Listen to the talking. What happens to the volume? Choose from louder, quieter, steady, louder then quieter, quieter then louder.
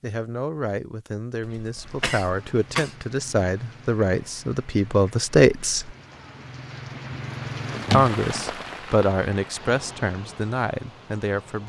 louder then quieter.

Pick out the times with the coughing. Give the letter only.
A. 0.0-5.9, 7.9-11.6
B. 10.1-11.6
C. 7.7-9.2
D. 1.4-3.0
D.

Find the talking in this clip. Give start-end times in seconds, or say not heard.
0.0-5.9, 7.9-11.6.